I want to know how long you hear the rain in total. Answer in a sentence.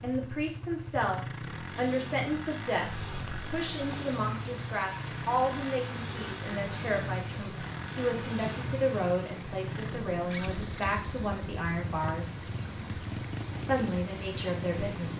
You can hear the rain for 12 seconds altogether.